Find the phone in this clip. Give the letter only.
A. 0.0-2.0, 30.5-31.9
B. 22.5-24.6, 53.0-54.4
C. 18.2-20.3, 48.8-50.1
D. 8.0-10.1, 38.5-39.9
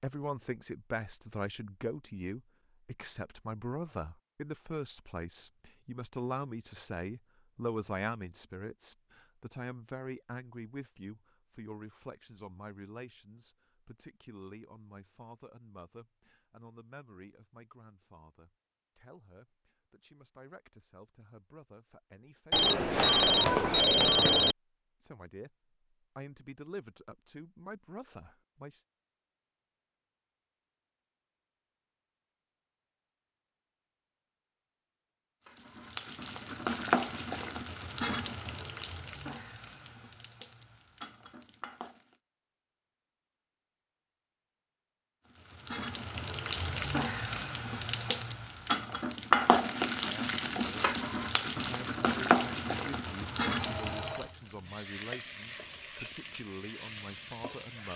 B.